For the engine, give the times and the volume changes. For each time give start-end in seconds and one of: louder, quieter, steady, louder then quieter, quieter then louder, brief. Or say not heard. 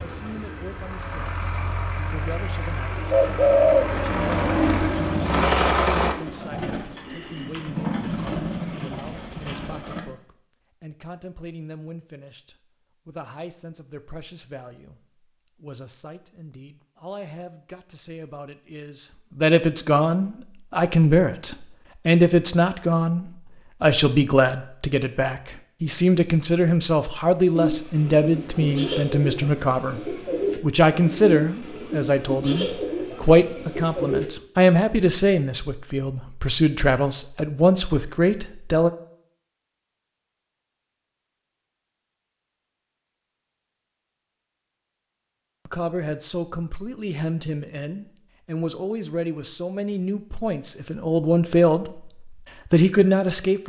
0.0-6.2 louder.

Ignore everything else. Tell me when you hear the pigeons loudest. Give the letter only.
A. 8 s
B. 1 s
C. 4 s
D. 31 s
C.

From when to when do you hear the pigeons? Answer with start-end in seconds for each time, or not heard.
3.1-10.1, 27.5-34.2.